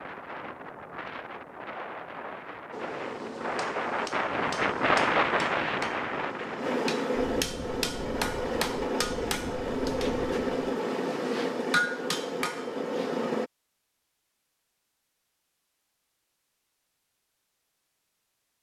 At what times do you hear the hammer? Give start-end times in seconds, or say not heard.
2.7-13.5.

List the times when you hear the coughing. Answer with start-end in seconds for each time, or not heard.
not heard.